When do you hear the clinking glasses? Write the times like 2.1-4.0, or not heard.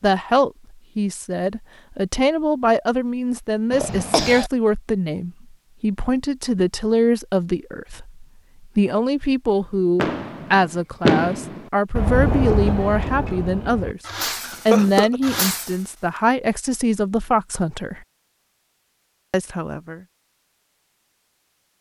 not heard.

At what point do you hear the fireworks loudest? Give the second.
11 s.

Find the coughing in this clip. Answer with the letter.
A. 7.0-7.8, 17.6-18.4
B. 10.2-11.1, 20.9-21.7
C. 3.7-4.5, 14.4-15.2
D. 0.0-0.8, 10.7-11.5
C.